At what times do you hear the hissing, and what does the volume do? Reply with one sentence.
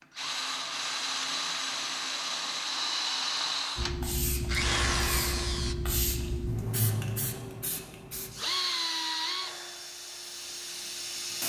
You can hear the hissing from 3.8 to 11.4 s, getting quieter.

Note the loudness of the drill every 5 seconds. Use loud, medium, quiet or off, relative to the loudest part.
loud, loud, quiet.